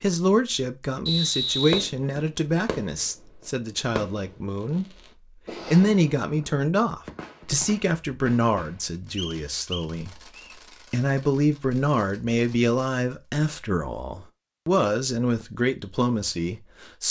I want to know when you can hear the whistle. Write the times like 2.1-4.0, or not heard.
1.1-1.9, 9.2-10.6.